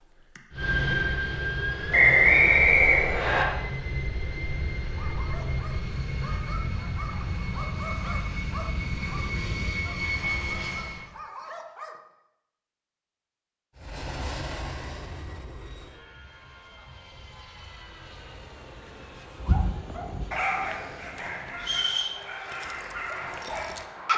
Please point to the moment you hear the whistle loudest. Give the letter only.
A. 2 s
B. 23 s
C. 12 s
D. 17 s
A.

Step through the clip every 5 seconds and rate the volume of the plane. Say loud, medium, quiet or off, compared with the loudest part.
loud, loud, loud, quiet, quiet.